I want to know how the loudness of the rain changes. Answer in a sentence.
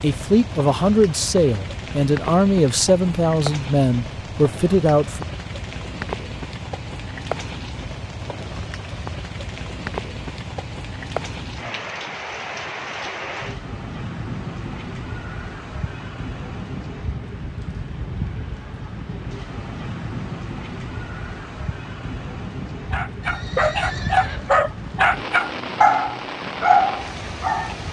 The loudness of the rain stays about the same.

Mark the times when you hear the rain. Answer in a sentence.
You can hear the rain from 0.0 to 27.8 s.